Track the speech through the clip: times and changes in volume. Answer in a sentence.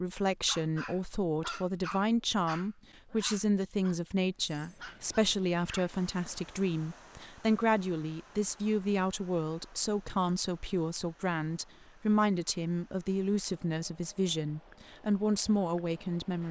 You can hear the speech from 0.0 to 16.4 s, at a steady volume.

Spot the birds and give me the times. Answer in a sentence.
You can't hear the birds here.